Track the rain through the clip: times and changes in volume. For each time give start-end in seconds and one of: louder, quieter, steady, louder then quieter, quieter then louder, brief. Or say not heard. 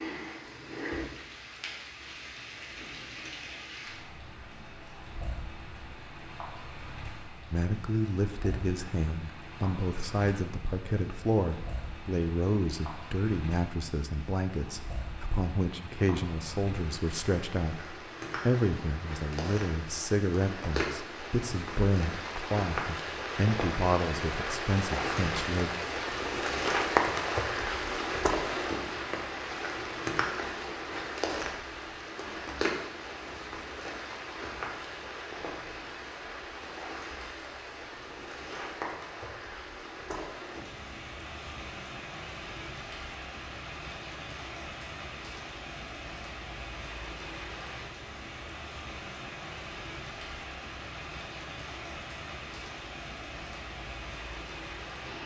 0.0-55.2 louder then quieter.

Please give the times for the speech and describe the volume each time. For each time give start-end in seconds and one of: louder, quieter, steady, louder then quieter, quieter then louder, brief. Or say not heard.
7.5-25.7 steady.